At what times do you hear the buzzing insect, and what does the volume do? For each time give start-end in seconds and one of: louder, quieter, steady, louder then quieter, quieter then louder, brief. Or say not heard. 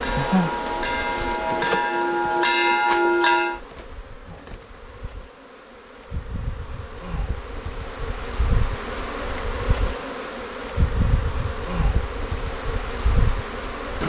0.0-14.0 quieter then louder.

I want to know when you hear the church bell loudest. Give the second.
3 s.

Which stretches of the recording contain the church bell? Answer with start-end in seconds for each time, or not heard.
0.0-3.6.